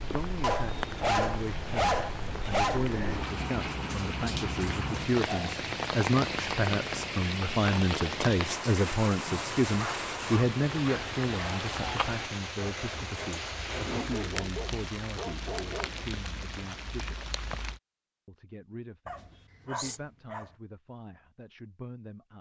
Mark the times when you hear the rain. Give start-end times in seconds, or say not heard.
0.0-17.8.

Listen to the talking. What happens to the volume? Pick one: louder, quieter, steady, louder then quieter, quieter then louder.
louder then quieter.